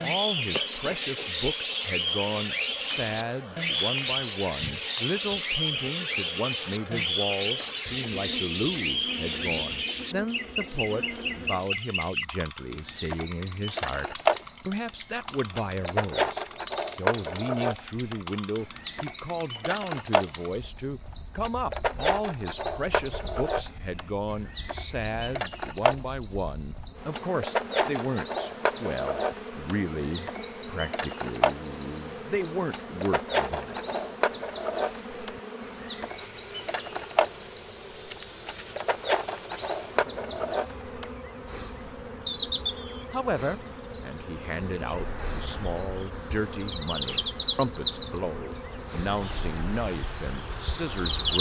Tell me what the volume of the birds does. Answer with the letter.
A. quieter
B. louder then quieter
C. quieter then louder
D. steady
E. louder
D.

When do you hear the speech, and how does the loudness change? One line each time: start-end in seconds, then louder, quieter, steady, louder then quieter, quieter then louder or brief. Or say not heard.
0.0-33.8 steady
43.1-51.3 steady.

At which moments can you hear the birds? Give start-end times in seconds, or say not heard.
0.0-51.3.